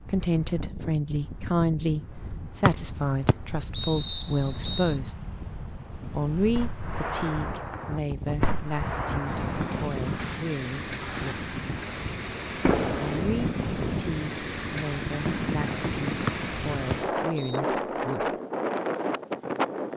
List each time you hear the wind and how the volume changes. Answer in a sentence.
You can hear the wind from 0.0 to 19.9 s, getting louder.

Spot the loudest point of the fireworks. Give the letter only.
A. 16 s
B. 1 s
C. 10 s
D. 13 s
D.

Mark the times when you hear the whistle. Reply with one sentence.
The whistle can be heard from 2.6 to 5.0 s and from 16.2 to 17.6 s.